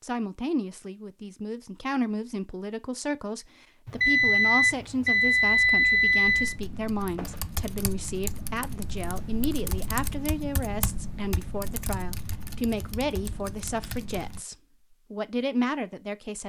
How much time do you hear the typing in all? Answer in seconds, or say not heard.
8 s.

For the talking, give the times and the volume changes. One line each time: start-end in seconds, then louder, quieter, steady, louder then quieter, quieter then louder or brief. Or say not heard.
0.0-16.4 steady.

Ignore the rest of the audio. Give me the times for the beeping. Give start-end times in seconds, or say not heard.
3.9-6.5.